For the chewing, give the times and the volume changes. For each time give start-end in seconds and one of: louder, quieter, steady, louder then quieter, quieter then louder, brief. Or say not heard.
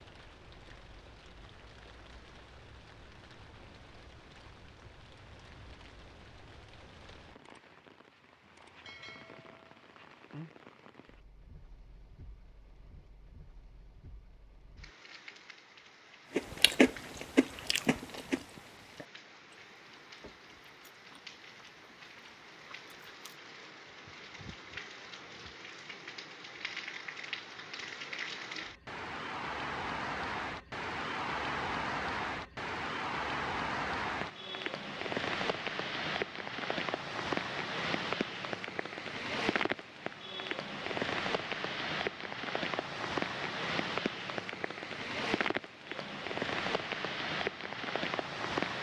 16.3-23.4 quieter.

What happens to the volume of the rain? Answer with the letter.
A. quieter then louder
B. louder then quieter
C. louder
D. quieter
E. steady
C.